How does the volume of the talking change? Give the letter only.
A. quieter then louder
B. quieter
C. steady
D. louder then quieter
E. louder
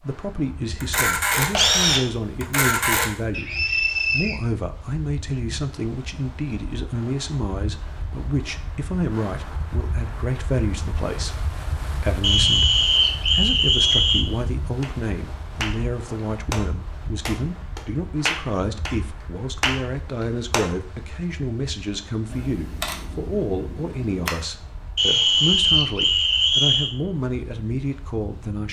C.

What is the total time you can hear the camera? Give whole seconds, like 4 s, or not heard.
4 s.